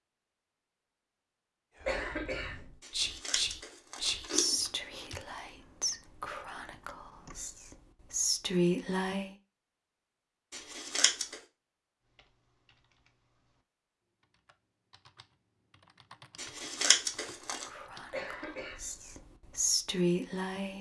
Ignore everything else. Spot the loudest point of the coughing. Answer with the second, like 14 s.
2 s.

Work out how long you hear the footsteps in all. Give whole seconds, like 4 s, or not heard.
not heard.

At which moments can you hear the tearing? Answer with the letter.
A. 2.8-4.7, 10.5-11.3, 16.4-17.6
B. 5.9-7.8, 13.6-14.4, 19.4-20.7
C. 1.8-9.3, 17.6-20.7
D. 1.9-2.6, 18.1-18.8
A.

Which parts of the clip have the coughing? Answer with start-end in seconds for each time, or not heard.
1.9-2.6, 18.1-18.8.